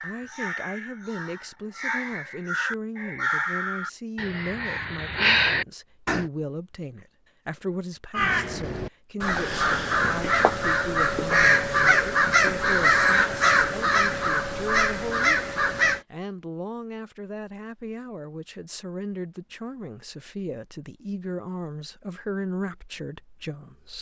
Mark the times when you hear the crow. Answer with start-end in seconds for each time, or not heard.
0.0-6.2, 8.1-16.0.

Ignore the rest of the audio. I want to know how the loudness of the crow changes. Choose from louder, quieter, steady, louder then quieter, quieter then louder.
louder.